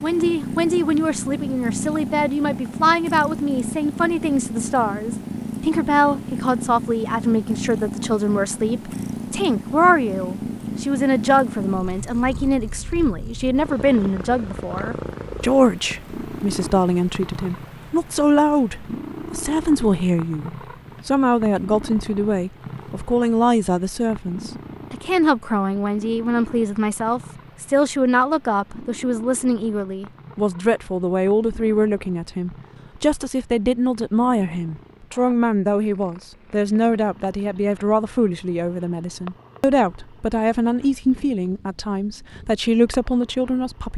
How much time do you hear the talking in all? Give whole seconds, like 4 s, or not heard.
44 s.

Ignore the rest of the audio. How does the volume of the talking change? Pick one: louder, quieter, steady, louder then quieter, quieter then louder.
steady.